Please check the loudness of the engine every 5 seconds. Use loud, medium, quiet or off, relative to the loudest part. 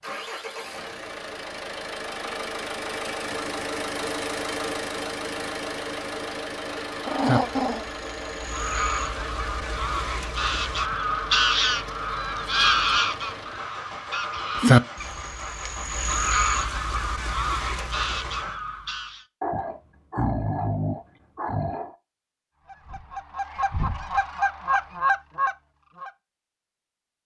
loud, loud, medium, medium, off, off.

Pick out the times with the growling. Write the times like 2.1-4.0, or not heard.
7.0-7.8, 19.4-21.9.